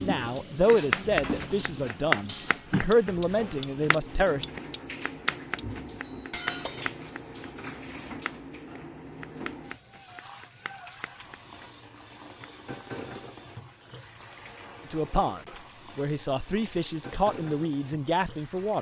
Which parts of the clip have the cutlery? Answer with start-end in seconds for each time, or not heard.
0.7-6.8.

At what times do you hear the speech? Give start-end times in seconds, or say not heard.
0.0-4.5, 14.9-18.7.